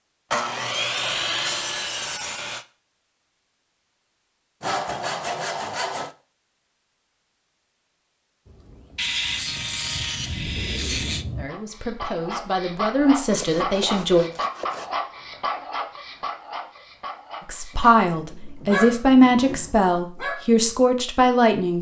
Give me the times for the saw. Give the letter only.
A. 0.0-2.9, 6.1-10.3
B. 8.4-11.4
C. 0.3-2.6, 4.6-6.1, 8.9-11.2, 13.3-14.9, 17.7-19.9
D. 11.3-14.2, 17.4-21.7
C.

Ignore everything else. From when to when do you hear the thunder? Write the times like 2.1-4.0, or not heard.
8.4-11.4.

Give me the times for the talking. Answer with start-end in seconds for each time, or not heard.
11.3-14.2, 17.4-21.7.